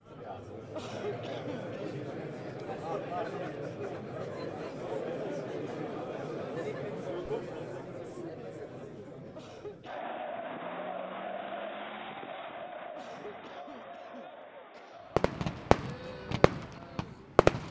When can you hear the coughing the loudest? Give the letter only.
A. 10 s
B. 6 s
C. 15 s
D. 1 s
D.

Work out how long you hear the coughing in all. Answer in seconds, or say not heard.
4 s.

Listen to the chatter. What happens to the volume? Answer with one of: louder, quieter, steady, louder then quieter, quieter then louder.
quieter.